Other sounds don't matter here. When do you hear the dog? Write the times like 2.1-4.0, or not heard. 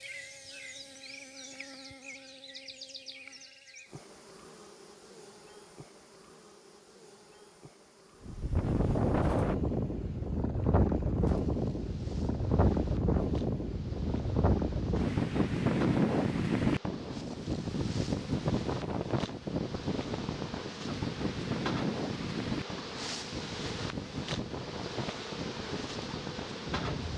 not heard.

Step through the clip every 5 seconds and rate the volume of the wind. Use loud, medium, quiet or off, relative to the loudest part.
off, loud, loud, loud, medium, medium.